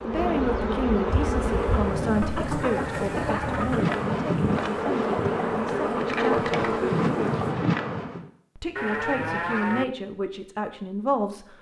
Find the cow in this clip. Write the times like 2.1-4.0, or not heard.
2.6-3.7, 8.8-9.8.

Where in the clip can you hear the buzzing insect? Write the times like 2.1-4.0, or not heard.
0.0-8.3.